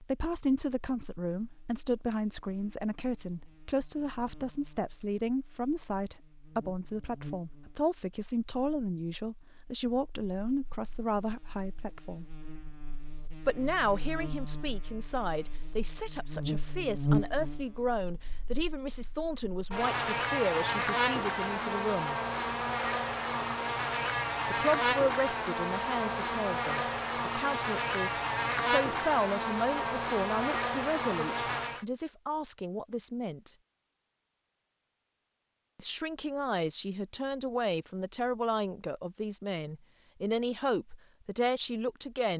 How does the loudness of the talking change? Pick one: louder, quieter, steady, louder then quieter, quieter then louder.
steady.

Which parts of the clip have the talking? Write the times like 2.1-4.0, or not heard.
0.0-12.3, 13.4-22.1, 24.5-33.5, 35.8-42.3.